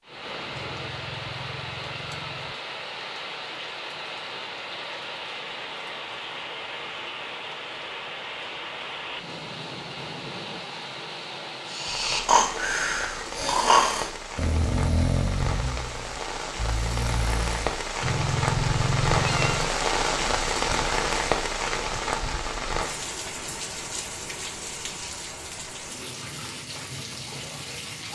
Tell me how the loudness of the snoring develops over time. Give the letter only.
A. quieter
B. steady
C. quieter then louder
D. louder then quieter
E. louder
A.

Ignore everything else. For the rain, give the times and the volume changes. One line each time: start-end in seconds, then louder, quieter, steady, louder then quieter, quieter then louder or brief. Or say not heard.
0.0-28.1 louder then quieter.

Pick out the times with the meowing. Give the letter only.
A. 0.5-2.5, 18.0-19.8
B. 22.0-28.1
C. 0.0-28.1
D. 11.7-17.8
A.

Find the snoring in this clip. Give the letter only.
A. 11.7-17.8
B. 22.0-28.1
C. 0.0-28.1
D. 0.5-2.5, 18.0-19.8
A.